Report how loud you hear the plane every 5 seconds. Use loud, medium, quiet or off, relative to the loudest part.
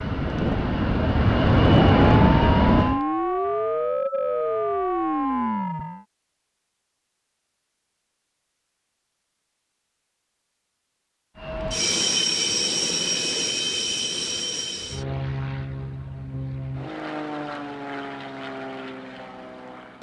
loud, off, medium, quiet.